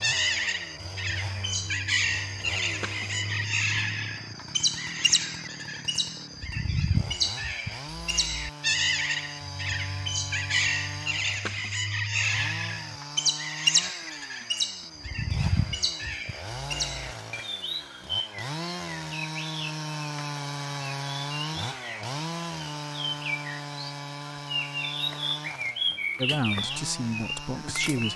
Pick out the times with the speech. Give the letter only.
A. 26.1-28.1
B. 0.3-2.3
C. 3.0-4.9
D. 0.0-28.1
A.